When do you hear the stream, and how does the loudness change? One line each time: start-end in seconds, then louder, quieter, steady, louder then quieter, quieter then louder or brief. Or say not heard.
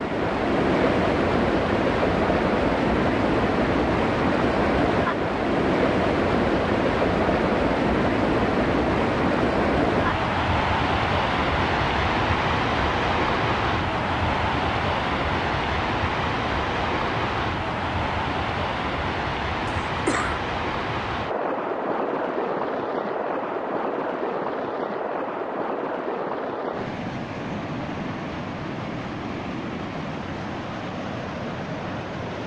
0.0-32.4 quieter.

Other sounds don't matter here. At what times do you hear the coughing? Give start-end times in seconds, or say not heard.
19.6-20.4.